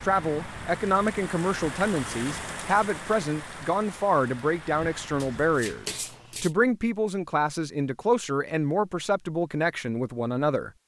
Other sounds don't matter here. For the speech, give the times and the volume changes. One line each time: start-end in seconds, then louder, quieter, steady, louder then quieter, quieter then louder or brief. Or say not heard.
0.0-10.8 steady.